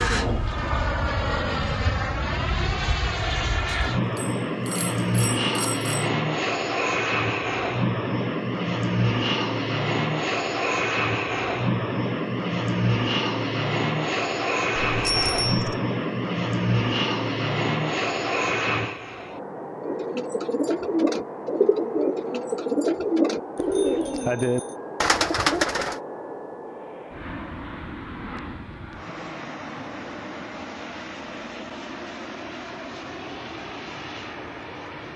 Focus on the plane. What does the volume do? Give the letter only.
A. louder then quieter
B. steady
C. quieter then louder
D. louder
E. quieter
E.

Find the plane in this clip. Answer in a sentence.
You can hear the plane from 0.1 to 35.1 s.